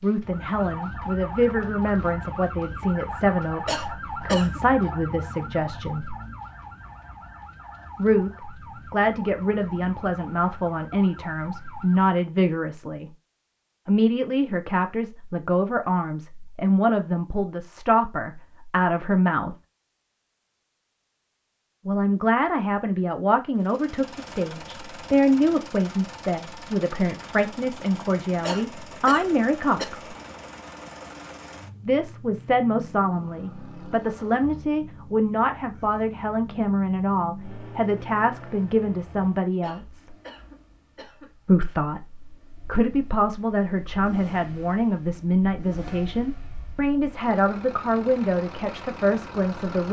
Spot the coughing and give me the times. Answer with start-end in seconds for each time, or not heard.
3.6-4.6, 28.4-29.9, 39.6-41.7.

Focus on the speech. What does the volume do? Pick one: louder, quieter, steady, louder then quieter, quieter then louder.
steady.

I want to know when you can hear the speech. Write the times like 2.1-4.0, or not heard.
0.0-6.2, 8.0-13.1, 13.8-19.6, 21.9-30.0, 31.9-40.1, 41.5-49.8.